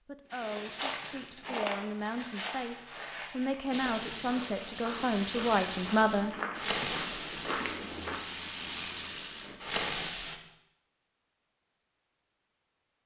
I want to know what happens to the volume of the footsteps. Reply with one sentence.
The volume of the footsteps goes down, then up.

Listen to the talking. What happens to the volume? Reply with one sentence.
The volume of the talking goes up.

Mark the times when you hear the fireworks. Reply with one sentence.
You can hear the fireworks from 3.7 to 10.4 s.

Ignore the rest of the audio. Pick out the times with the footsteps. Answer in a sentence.
You can hear the footsteps from 0.3 to 8.2 s.